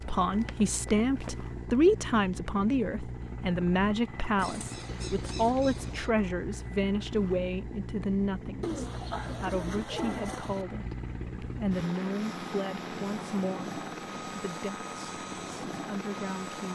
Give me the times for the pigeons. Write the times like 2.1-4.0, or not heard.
4.3-6.2, 8.6-10.7.